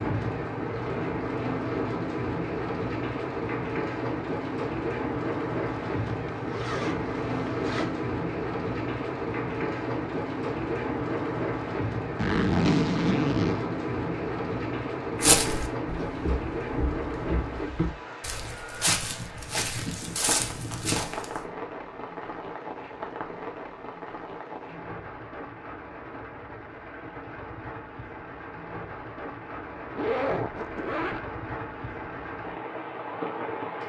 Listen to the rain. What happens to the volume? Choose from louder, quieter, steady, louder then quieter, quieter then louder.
quieter.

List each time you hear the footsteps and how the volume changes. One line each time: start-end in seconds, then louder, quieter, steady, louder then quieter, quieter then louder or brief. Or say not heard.
15.2-21.4 louder.